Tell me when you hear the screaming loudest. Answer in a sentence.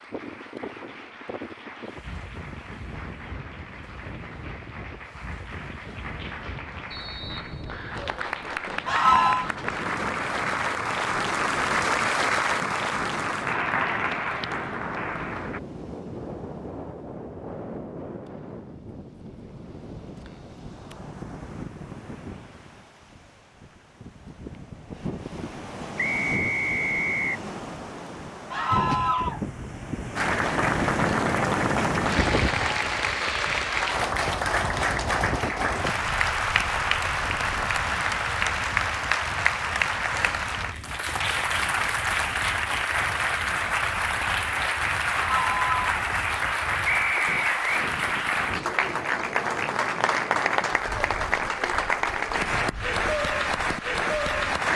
The volume of the screaming peaks at 9 seconds.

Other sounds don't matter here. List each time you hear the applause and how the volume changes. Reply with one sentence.
You can hear the applause from 0.0 to 15.6 s, getting louder; and from 30.1 to 54.7 s, at a steady volume.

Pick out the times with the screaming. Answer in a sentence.
The screaming can be heard from 8.8 to 9.5 s, from 28.5 to 29.4 s and from 45.1 to 46.0 s.